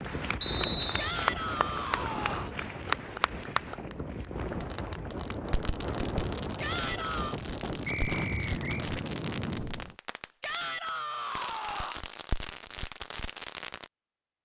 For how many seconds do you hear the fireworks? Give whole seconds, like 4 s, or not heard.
9 s.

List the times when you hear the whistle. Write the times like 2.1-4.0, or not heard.
0.4-1.1, 7.8-8.8.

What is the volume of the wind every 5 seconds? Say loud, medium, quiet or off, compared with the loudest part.
loud, loud, off.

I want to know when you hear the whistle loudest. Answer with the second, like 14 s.
1 s.